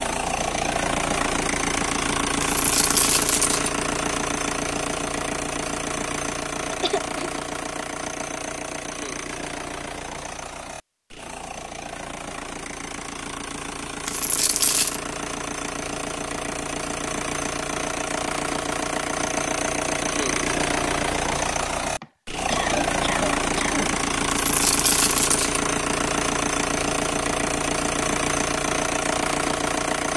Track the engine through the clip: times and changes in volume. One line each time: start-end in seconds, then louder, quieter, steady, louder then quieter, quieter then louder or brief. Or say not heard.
0.0-30.1 quieter then louder.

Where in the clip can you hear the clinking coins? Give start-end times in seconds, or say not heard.
2.4-3.7, 14.1-15.0, 24.2-25.6.